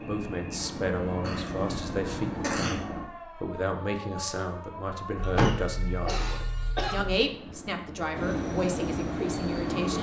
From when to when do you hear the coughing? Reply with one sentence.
You can hear the coughing from 1.2 to 2.8 s and from 5.2 to 7.2 s.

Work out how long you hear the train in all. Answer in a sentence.
The train can be heard for 6 seconds in total.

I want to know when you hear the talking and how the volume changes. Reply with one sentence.
The talking can be heard from 0.1 to 9.9 s, at a steady volume.